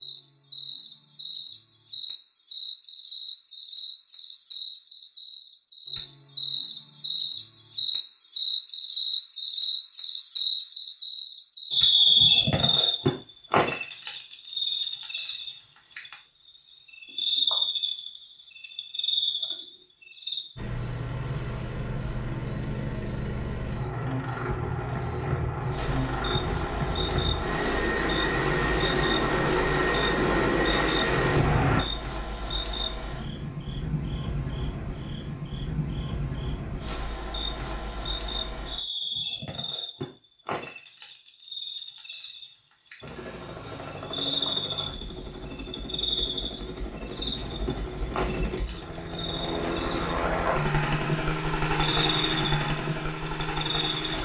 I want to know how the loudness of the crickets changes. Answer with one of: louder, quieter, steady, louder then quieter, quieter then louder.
quieter.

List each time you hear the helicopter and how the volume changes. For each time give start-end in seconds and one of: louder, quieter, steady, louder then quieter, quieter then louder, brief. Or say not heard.
20.6-31.9 louder
43.0-54.1 louder.